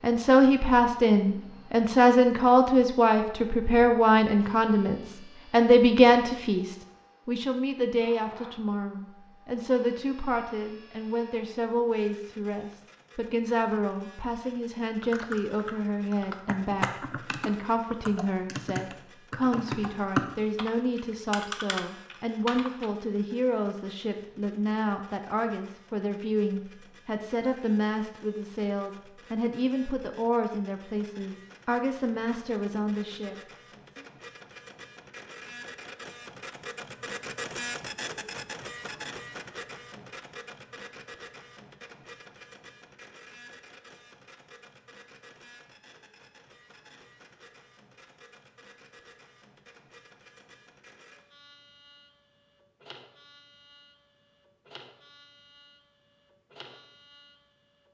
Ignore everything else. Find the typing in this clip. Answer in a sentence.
The typing can be heard from 15.0 to 22.9 s.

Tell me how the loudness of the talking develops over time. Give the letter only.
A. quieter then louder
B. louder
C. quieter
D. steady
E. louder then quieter
C.